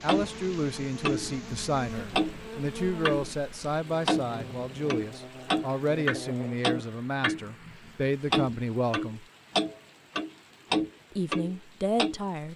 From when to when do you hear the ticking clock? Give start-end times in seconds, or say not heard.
0.1-3.4, 4.0-12.2.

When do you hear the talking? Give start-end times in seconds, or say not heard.
0.0-9.2, 11.1-12.5.